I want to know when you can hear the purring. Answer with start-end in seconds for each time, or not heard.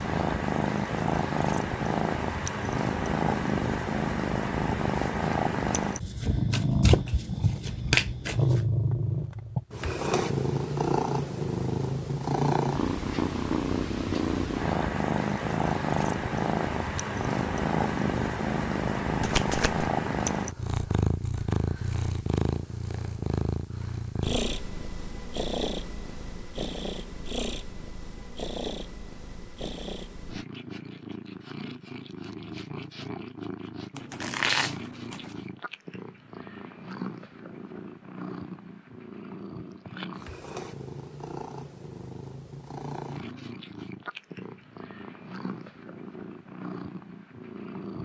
0.0-48.0.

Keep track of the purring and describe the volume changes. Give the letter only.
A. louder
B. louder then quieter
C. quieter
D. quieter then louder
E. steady
C.